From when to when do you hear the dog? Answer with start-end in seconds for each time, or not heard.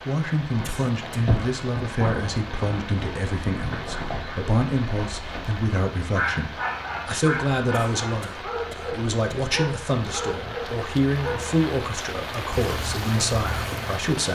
0.5-11.6.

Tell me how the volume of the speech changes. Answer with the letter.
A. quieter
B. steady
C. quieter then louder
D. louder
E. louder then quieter
B.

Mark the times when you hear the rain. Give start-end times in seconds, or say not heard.
0.0-14.3.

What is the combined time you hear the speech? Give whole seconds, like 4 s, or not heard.
14 s.